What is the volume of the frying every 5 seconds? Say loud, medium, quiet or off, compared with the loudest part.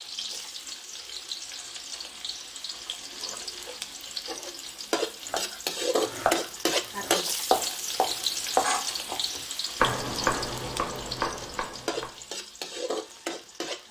medium, loud, medium.